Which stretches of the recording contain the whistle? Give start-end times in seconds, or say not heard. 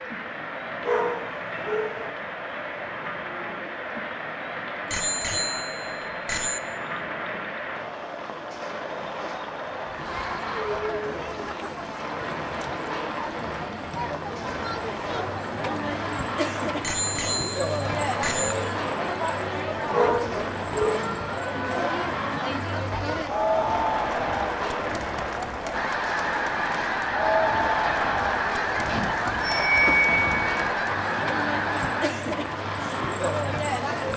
not heard.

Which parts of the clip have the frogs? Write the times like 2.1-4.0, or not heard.
not heard.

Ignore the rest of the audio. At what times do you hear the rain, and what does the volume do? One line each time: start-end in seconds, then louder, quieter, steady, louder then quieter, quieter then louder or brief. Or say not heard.
0.0-34.1 steady.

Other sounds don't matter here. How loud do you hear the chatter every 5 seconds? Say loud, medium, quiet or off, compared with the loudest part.
medium, medium, medium, loud, loud, loud, loud.